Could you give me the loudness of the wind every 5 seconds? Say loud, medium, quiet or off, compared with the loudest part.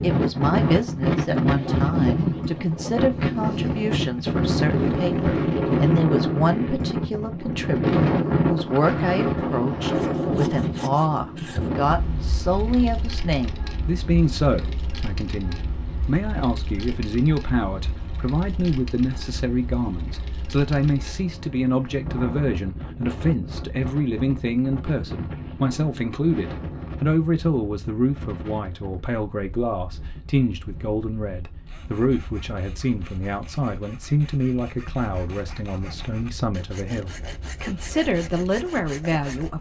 loud, loud, medium, quiet, quiet, quiet, quiet, quiet.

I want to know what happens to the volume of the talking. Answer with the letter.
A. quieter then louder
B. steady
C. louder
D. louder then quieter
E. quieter
B.